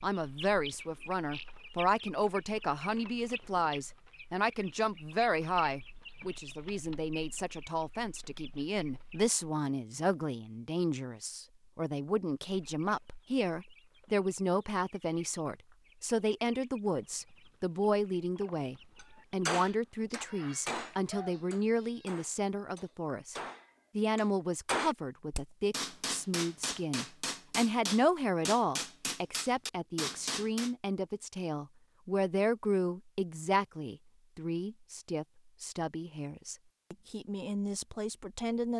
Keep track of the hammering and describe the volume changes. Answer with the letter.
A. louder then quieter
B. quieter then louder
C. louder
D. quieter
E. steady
B.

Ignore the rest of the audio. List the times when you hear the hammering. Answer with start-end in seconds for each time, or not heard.
19.0-30.7.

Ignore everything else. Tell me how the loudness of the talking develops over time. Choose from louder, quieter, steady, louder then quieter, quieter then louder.
steady.